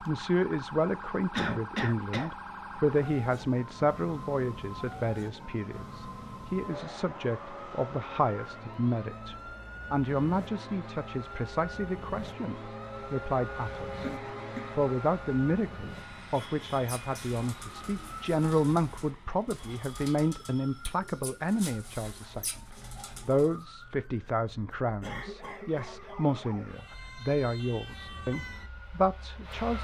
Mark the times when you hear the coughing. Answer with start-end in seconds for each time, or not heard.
1.4-2.2, 14.0-14.7, 25.0-25.9.